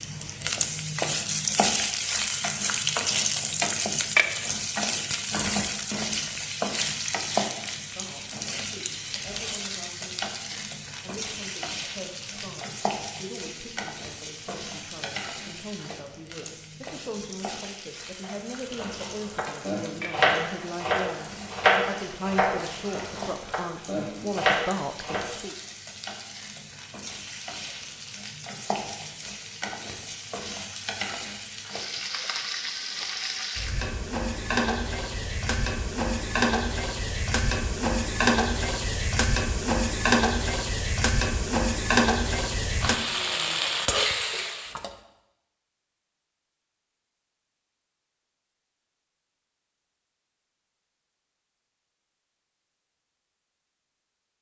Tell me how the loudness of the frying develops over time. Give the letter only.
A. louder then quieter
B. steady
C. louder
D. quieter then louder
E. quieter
D.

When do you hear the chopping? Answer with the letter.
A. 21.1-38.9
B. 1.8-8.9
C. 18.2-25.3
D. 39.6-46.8
C.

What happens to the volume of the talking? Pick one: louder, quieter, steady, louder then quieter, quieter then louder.
louder.